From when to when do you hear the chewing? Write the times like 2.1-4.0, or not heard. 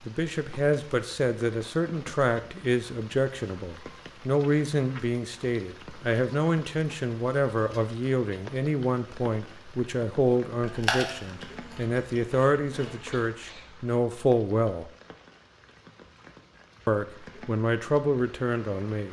10.6-13.2.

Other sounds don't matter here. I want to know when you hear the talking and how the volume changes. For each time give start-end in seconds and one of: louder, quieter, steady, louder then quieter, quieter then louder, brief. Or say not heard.
0.0-14.9 steady
16.9-19.0 brief.